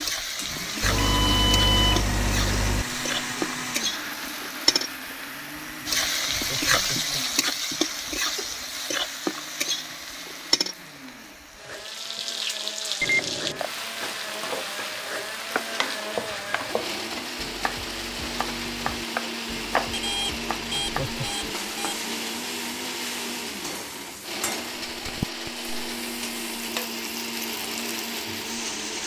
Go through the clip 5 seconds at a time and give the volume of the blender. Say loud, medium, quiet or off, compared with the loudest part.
loud, medium, medium, loud, loud, loud.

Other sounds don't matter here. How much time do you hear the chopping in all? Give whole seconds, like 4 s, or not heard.
6 s.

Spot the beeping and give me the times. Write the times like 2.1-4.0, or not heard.
0.8-2.9, 13.0-13.7, 19.9-22.0.